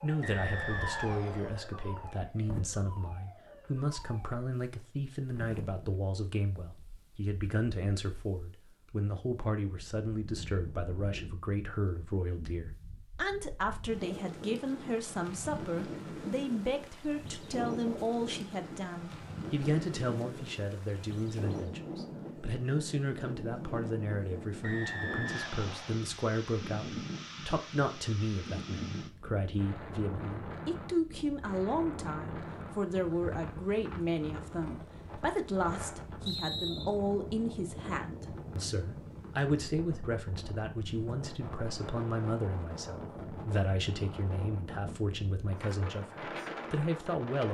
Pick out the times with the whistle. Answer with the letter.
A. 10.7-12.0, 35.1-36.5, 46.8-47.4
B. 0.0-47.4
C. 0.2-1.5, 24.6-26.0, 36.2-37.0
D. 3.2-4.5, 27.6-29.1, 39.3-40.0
C.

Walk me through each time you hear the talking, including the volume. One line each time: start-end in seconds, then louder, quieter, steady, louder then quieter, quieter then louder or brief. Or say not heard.
0.0-47.4 steady.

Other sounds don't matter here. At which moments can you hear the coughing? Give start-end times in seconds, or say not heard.
not heard.